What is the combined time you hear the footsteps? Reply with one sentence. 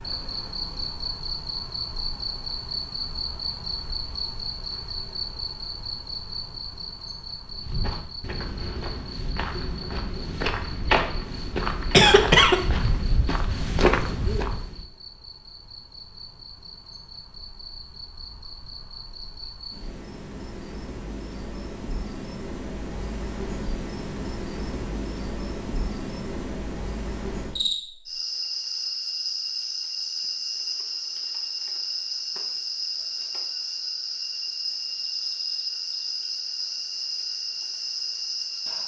You can hear the footsteps for 7 seconds altogether.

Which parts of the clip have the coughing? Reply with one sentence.
The coughing can be heard from 11.9 to 12.6 s.